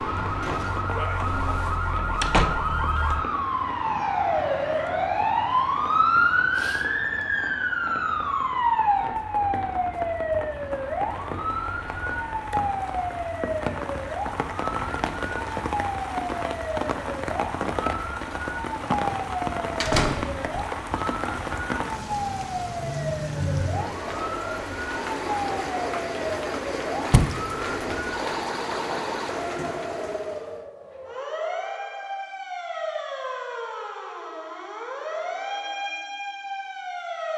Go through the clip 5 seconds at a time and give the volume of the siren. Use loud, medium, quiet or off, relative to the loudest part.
loud, loud, medium, medium, medium, medium, medium, medium.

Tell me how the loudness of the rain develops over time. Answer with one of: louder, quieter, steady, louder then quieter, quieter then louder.
louder.